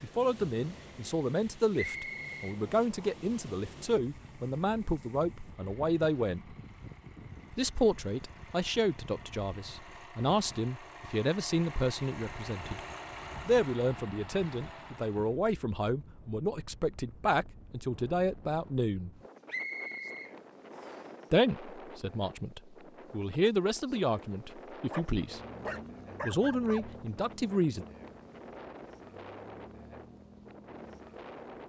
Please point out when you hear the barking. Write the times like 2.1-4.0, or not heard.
24.9-26.9.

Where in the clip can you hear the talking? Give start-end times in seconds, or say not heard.
0.0-6.5, 7.5-12.8, 13.4-19.1, 21.3-25.4, 26.2-27.9.